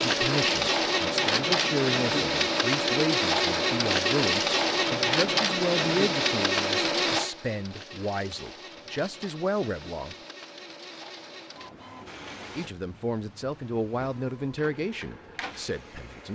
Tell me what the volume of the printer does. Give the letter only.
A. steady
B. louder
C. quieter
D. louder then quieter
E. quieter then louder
C.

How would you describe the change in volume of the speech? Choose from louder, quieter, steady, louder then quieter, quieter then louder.
steady.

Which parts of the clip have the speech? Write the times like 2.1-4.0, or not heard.
0.0-10.2, 12.6-16.3.